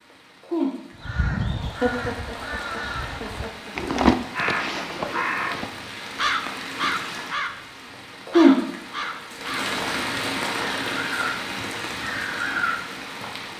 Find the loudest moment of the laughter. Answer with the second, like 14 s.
2 s.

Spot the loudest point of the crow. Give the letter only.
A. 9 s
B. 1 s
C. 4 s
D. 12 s
C.